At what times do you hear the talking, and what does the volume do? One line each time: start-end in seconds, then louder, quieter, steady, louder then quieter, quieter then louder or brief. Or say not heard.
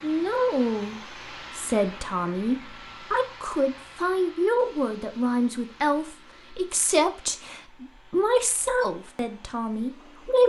0.0-10.4 steady.